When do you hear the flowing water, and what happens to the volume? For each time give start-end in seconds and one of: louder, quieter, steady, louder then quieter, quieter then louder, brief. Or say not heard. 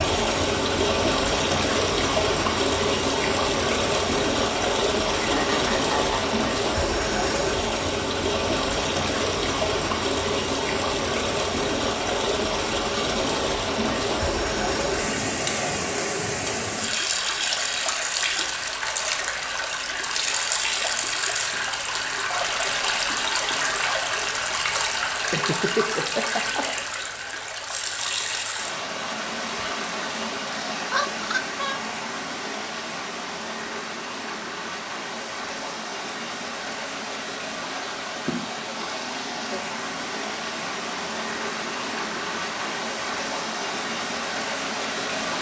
0.0-45.3 quieter.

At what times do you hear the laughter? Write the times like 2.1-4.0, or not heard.
5.2-6.3, 25.2-26.6, 30.9-31.8.